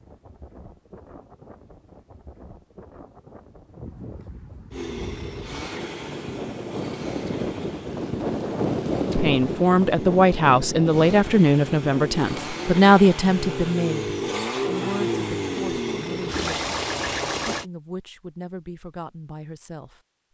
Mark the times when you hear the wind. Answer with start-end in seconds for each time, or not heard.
0.0-12.8.